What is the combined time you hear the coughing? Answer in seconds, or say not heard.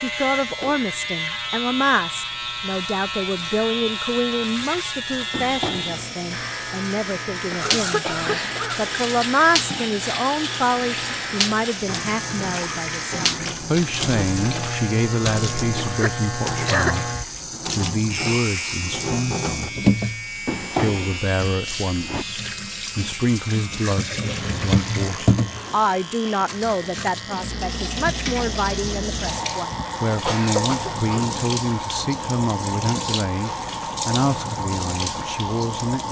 4 s.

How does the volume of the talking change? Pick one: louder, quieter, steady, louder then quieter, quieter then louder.
steady.